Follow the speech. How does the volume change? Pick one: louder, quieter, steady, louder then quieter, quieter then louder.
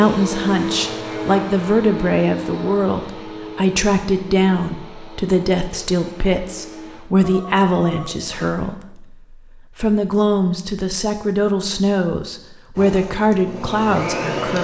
steady.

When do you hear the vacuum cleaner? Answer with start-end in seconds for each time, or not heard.
0.0-7.0, 12.8-14.5.